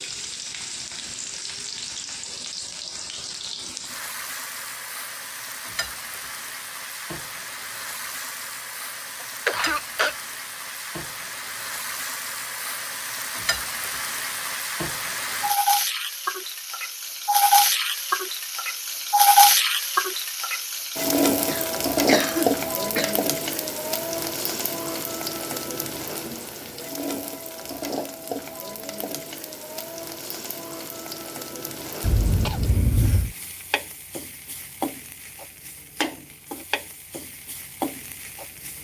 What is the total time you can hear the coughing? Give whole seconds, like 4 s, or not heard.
4 s.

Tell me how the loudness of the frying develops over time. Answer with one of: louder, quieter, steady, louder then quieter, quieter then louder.
louder then quieter.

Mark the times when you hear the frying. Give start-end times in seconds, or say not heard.
0.0-38.7.